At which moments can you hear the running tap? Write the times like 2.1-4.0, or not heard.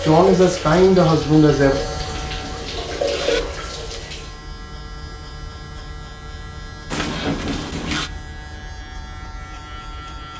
0.0-4.3.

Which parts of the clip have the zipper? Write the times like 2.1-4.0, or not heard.
2.0-3.5, 6.9-8.1.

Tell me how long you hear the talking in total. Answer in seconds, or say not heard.
2 s.